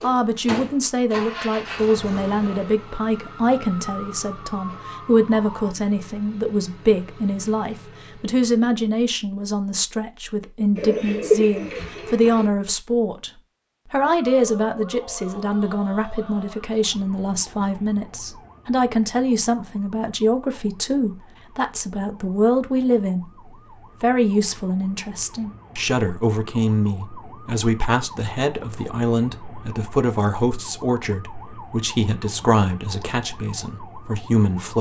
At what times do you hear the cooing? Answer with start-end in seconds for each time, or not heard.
10.8-12.5.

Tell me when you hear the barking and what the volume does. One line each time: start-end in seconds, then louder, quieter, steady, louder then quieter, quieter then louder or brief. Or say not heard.
not heard.